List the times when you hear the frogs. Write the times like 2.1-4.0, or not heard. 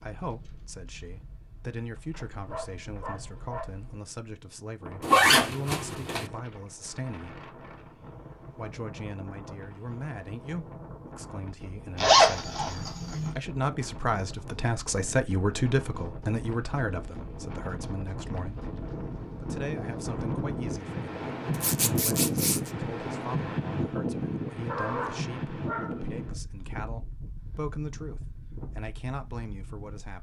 not heard.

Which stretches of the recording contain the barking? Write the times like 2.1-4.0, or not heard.
1.8-3.6, 24.6-26.0.